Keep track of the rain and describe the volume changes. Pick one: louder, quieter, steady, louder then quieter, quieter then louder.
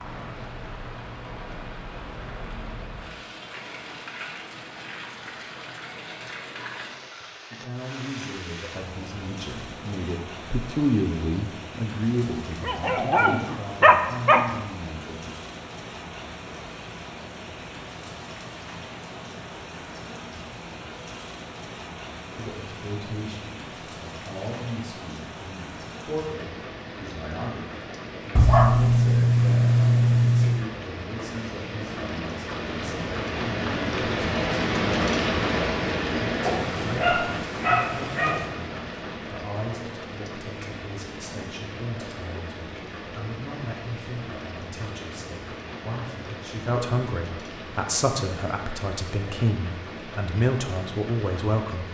louder then quieter.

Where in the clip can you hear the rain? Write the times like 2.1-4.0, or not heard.
0.0-51.8.